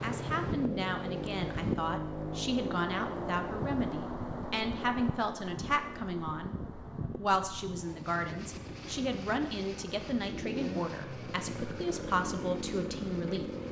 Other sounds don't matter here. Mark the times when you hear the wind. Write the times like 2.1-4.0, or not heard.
0.0-13.6.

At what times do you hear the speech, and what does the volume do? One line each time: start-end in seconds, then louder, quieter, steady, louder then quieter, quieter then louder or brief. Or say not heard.
0.0-13.4 steady.